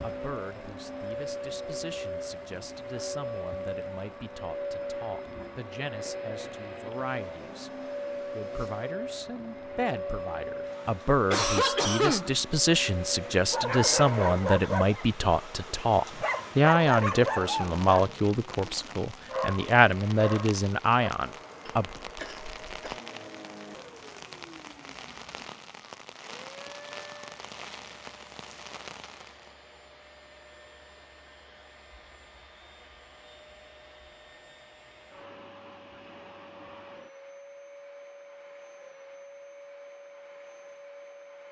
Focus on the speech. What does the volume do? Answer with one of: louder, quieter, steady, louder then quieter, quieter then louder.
louder.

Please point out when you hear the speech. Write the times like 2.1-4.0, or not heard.
0.0-21.9.